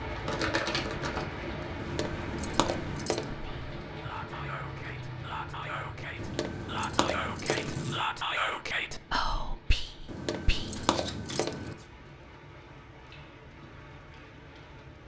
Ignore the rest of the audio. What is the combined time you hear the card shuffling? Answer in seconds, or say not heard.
3 s.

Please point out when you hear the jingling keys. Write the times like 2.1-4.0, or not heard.
1.8-3.4, 6.2-7.8, 10.1-11.8.